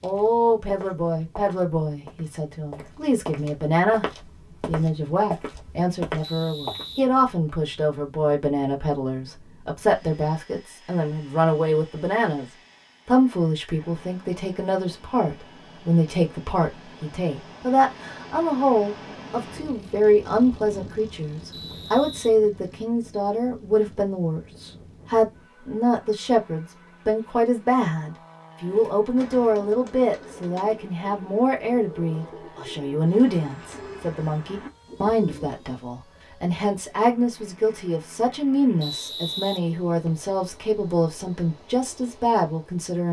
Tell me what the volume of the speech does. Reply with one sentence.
The volume of the speech stays about the same.